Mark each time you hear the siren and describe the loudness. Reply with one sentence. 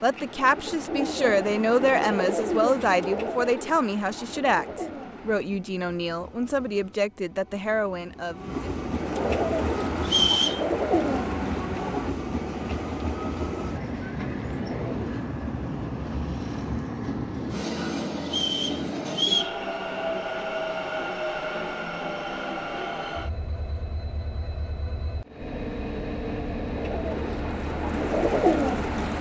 The siren can't be heard in this clip.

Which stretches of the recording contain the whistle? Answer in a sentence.
You can hear the whistle from 10.1 to 10.7 s and from 18.2 to 19.6 s.